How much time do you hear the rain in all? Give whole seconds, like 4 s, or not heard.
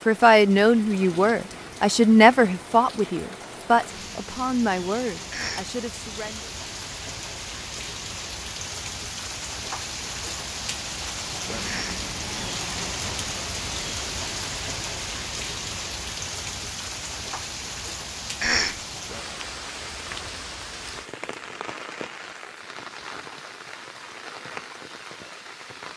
26 s.